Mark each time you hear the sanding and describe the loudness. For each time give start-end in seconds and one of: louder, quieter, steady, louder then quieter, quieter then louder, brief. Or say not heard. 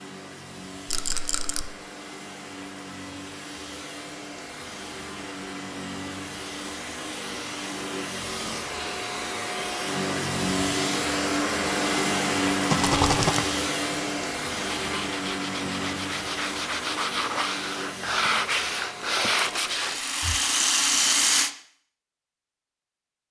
14.7-20.4 louder.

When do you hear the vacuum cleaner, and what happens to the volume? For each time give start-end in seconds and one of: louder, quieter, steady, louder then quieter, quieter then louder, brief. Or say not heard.
0.0-19.8 louder then quieter.